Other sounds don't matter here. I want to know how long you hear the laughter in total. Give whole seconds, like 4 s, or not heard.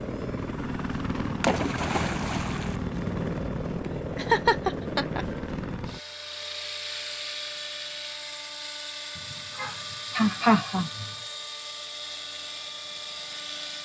3 s.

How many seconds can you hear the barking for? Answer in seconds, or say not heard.
not heard.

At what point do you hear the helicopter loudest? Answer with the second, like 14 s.
3 s.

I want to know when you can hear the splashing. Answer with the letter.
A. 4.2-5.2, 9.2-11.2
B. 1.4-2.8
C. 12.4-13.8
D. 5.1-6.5
B.